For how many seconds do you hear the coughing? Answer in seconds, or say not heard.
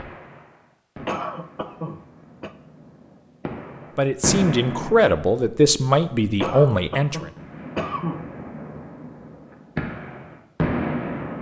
3 s.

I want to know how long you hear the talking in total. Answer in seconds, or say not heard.
3 s.